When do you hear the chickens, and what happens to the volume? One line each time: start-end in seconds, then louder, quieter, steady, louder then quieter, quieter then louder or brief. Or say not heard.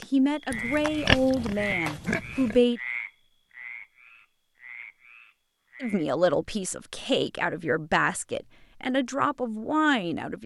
not heard.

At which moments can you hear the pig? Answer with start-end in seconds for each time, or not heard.
0.5-2.6.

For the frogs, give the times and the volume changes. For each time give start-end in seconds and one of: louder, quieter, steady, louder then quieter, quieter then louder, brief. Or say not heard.
0.0-6.0 quieter.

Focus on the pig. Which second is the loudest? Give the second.
1 s.